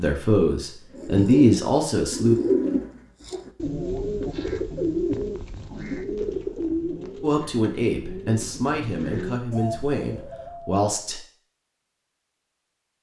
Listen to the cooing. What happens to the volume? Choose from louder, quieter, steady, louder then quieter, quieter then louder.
quieter.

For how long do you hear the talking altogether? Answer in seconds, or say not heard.
6 s.